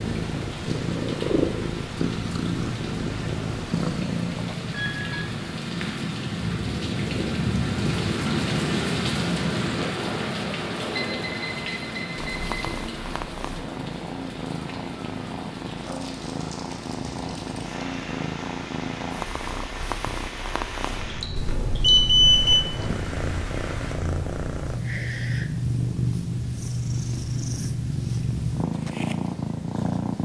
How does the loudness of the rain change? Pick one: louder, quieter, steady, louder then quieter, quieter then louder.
louder then quieter.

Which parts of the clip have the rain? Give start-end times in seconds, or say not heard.
0.0-23.9.